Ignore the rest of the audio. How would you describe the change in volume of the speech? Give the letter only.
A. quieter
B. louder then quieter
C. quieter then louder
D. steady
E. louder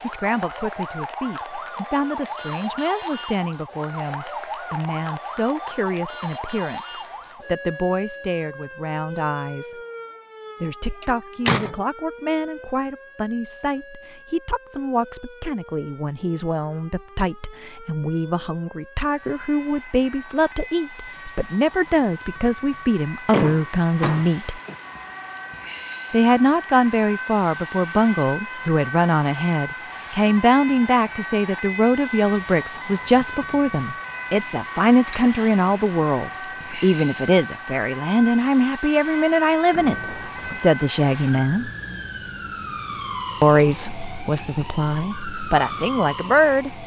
E.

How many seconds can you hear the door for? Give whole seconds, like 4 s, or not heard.
3 s.